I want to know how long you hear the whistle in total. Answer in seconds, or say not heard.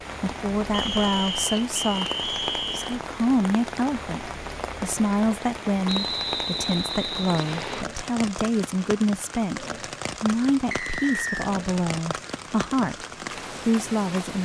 5 s.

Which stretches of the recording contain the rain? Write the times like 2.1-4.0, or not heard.
0.0-14.4.